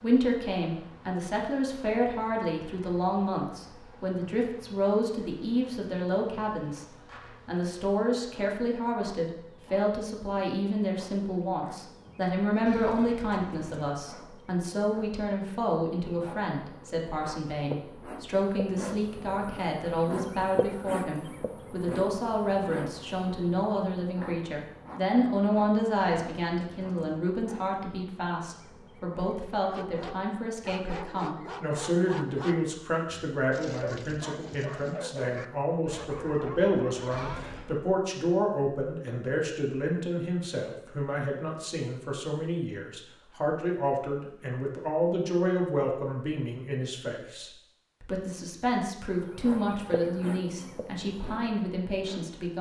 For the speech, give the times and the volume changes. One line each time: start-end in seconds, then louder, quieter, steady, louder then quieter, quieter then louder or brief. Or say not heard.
0.0-6.8 steady
7.5-52.5 steady.